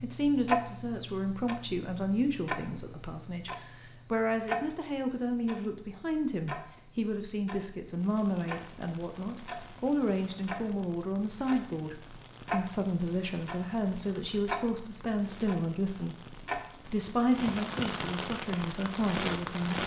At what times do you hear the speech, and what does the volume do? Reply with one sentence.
The speech can be heard from 0.0 to 16.1 s, at a steady volume; and briefly from 16.9 to 19.8 s.